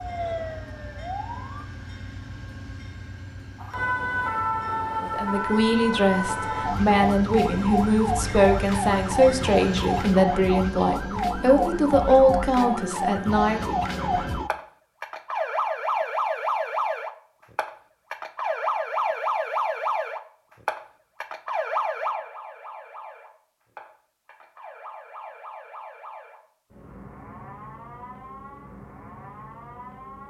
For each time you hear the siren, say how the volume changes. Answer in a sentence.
The siren can be heard briefly from 0.0 to 1.6 s; and from 3.6 to 30.2 s, getting quieter.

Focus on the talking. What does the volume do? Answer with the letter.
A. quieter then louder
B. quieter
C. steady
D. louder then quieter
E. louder
C.